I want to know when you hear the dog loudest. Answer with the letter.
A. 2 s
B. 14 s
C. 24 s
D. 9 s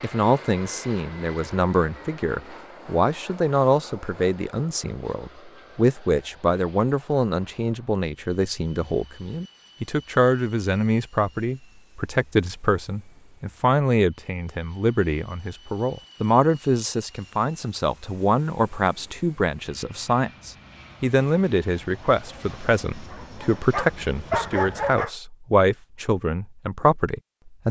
C.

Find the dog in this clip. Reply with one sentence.
You can hear the dog from 22.2 to 25.1 s.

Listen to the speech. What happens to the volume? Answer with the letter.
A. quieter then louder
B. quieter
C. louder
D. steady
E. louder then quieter
D.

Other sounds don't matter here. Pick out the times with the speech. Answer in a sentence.
You can hear the speech from 0.0 to 27.6 s.